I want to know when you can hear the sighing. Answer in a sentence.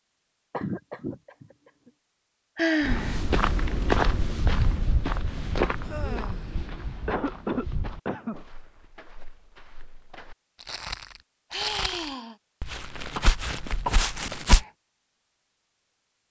The sighing can be heard from 2.5 to 3.2 s, from 5.8 to 6.7 s and from 11.5 to 12.3 s.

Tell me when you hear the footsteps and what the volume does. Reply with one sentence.
You can hear the footsteps from 2.8 to 14.6 s, getting quieter then louder.